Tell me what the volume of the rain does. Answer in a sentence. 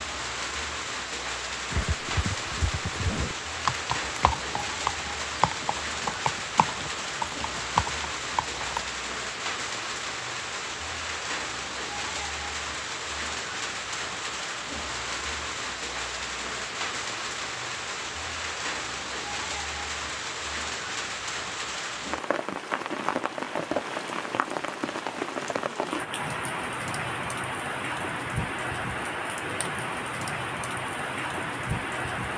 The volume of the rain stays about the same.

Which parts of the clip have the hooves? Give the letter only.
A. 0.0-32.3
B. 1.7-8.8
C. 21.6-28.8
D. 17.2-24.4
B.